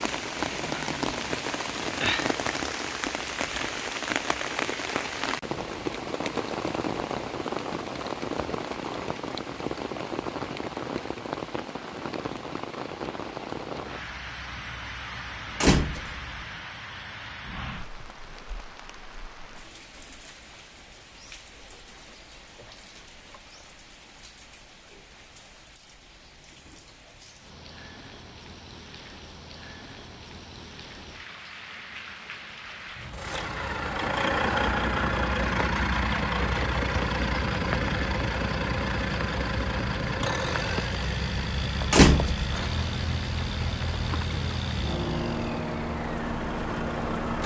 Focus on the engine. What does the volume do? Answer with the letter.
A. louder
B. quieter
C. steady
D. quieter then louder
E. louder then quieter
B.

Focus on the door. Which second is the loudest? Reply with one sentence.
The volume of the door peaks at 42 seconds.